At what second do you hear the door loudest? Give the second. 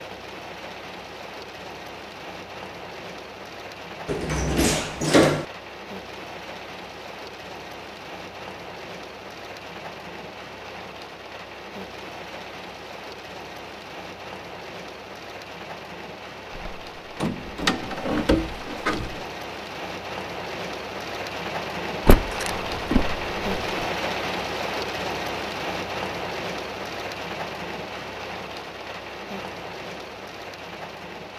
5 s.